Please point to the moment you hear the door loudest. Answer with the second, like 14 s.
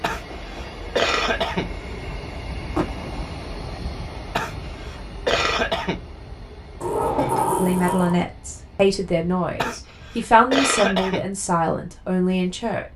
7 s.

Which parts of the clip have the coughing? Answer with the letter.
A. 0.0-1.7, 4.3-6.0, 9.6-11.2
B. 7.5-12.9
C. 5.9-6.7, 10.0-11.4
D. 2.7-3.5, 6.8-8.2
A.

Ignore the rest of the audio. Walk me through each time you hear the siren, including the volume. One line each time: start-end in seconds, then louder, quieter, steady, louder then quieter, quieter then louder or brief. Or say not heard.
not heard.